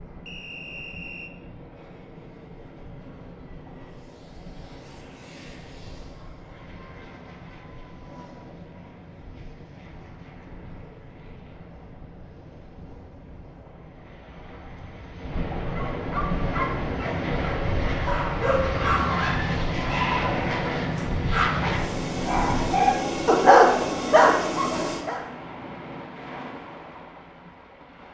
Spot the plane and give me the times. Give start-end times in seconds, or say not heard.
0.0-25.1.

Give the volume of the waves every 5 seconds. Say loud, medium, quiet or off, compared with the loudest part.
quiet, quiet, quiet, loud, loud, medium.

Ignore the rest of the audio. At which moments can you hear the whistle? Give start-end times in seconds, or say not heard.
0.2-1.3.